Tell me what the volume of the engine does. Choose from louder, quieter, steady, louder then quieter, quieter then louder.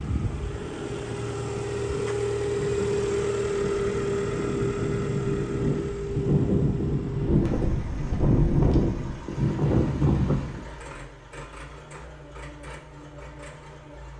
quieter.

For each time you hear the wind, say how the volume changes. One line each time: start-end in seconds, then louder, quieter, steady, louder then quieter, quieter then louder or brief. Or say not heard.
0.2-10.6 louder.